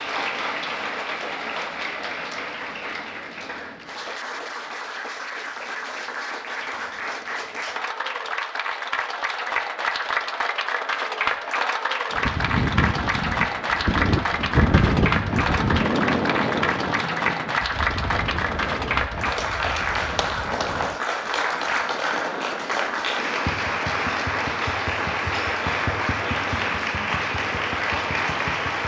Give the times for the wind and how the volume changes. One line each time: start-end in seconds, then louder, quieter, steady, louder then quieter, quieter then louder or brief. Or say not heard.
12.1-28.8 quieter.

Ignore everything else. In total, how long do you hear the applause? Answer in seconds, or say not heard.
29 s.